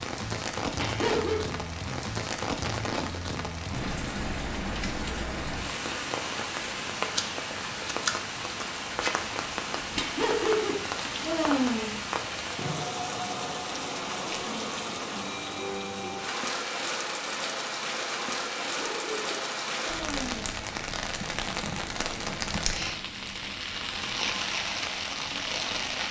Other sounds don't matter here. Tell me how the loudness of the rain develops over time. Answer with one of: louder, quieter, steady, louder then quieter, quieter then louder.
steady.